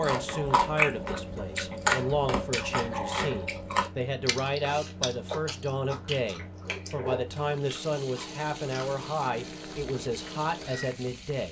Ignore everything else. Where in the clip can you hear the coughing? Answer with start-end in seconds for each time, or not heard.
not heard.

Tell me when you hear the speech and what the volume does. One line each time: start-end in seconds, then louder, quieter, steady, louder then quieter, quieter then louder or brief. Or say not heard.
0.0-11.4 steady.